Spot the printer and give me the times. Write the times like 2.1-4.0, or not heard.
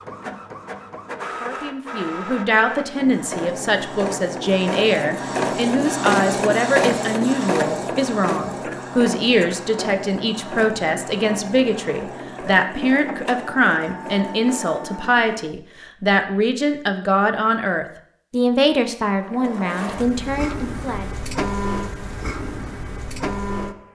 0.0-15.6, 19.2-23.8.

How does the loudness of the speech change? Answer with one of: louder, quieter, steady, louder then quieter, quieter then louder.
steady.